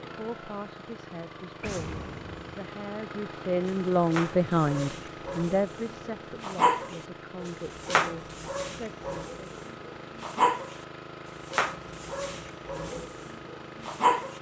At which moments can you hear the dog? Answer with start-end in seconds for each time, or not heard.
3.6-10.8, 11.4-14.3.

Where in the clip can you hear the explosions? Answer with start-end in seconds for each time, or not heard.
1.6-2.5.